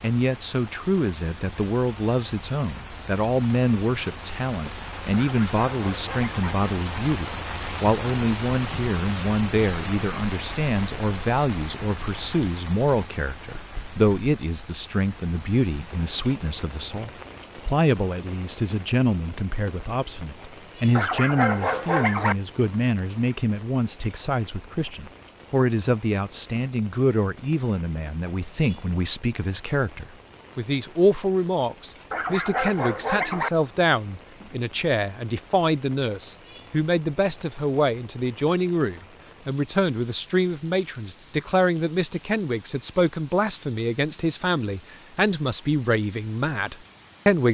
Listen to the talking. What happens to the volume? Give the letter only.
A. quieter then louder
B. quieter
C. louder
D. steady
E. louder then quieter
D.